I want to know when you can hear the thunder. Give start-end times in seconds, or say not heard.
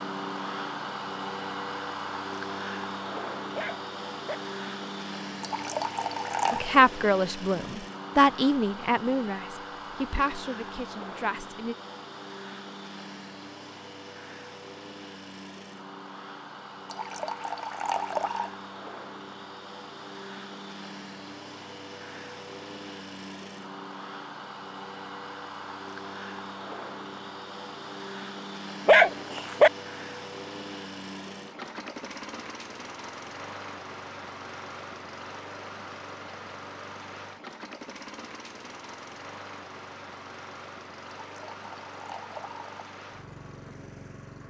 not heard.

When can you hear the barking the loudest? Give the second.
29 s.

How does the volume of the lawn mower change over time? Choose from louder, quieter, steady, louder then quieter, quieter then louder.
quieter.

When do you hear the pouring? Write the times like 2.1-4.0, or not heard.
5.4-6.8, 16.9-18.5, 41.2-42.8.